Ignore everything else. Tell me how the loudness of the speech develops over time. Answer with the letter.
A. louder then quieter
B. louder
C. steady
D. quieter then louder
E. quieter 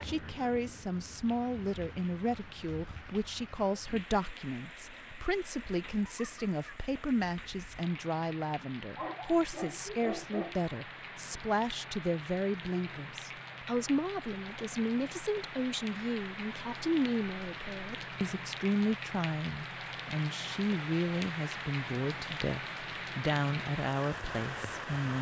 C.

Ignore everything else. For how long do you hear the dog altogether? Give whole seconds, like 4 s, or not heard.
2 s.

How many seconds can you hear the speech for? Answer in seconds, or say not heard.
25 s.